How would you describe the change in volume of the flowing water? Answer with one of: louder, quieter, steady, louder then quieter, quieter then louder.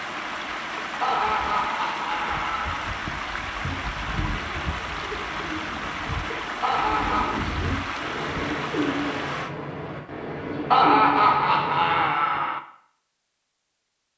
steady.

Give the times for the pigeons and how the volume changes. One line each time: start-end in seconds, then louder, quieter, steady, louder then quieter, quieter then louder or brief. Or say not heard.
3.6-12.4 louder.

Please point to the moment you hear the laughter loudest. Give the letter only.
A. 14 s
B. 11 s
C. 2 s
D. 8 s
B.